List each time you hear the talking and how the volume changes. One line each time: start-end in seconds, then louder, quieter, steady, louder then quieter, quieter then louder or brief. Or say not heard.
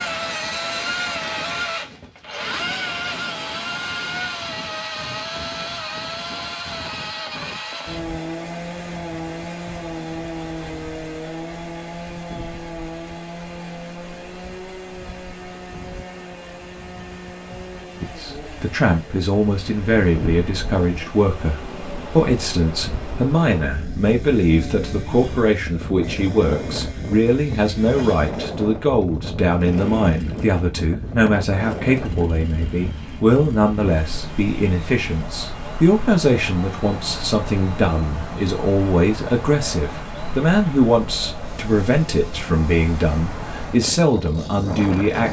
18.0-45.2 steady.